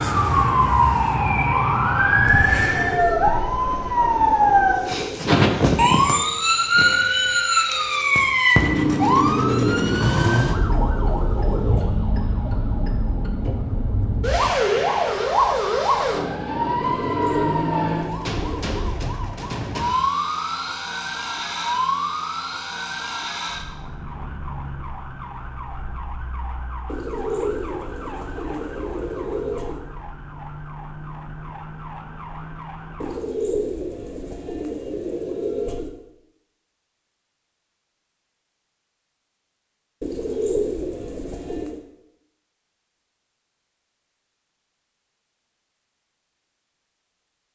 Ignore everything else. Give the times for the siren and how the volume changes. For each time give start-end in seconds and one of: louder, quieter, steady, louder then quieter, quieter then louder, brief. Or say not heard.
0.0-33.2 quieter.